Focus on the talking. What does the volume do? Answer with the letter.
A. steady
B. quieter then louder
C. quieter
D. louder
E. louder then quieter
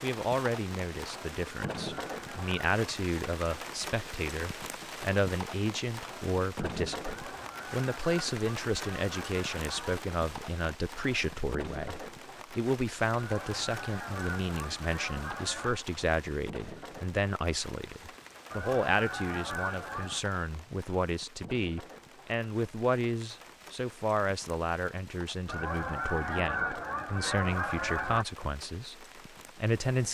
A.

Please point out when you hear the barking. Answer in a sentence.
The barking can't be heard in this clip.